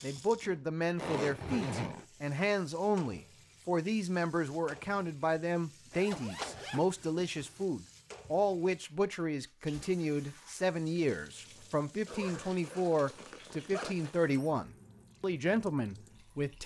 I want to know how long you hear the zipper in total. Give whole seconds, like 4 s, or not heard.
5 s.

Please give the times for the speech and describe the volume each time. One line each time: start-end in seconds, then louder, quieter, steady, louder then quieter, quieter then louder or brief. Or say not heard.
0.0-16.6 steady.